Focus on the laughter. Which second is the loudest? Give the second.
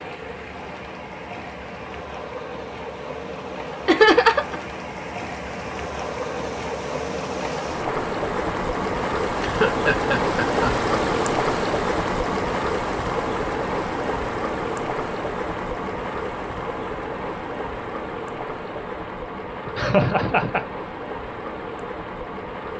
4 s.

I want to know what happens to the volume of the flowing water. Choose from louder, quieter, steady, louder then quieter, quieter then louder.
louder then quieter.